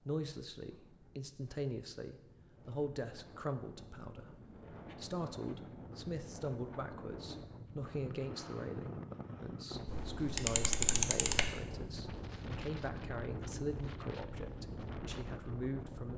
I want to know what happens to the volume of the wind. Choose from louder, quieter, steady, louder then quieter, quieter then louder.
louder.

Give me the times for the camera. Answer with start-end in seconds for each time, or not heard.
9.8-11.5.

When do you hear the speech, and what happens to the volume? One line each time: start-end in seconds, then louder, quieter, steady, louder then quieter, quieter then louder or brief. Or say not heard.
0.1-16.1 steady.